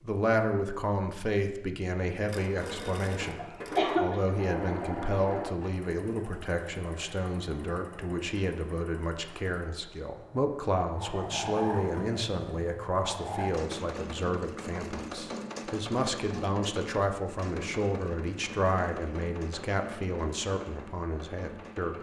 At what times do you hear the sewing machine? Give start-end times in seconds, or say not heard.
2.2-21.9.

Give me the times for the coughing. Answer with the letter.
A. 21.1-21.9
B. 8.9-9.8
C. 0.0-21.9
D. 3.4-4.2
D.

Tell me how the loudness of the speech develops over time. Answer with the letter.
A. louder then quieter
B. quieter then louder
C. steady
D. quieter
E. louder
C.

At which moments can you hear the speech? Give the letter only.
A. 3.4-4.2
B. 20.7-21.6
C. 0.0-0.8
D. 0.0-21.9
D.